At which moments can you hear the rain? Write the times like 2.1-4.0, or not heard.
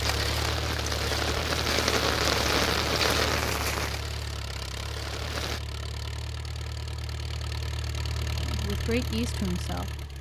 0.0-5.6.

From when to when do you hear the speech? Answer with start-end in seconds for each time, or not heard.
8.2-10.1.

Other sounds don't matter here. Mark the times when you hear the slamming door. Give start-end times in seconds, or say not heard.
not heard.